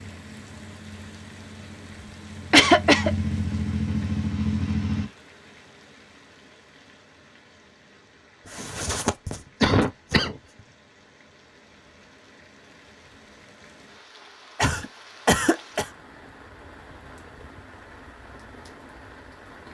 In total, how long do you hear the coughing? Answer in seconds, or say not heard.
4 s.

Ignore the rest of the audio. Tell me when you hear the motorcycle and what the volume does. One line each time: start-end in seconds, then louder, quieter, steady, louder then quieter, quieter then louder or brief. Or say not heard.
0.0-5.1 louder.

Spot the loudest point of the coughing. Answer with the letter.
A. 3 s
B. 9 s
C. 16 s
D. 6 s
A.